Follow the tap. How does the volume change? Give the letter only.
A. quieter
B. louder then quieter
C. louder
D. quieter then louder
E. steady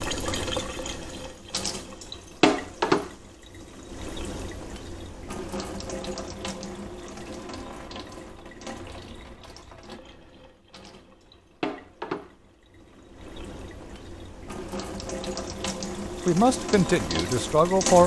D.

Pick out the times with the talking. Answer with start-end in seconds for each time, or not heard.
16.2-18.0.